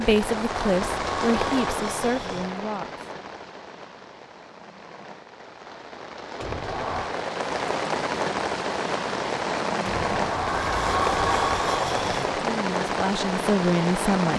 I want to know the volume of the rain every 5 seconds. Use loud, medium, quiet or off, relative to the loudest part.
medium, loud, loud.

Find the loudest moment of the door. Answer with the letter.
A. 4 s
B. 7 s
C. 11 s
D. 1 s
C.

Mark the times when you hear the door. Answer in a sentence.
The door can be heard from 0.2 to 2.5 s, from 6.4 to 7.2 s and from 9.8 to 12.3 s.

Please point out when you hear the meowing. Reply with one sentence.
The meowing can't be heard in this clip.